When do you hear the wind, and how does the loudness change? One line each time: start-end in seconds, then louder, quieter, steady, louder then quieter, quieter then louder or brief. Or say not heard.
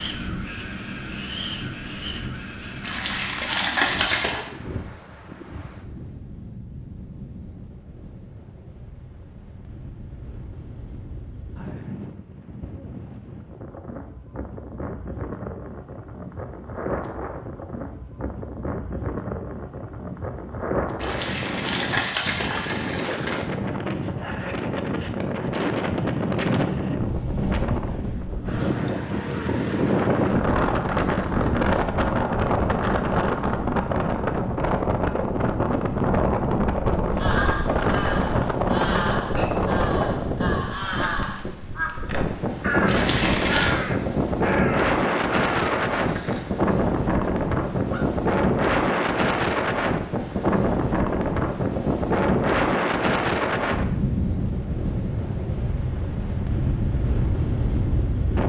0.0-58.4 louder.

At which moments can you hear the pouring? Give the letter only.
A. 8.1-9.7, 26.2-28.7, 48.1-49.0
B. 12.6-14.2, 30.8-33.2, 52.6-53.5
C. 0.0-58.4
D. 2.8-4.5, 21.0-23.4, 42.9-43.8
D.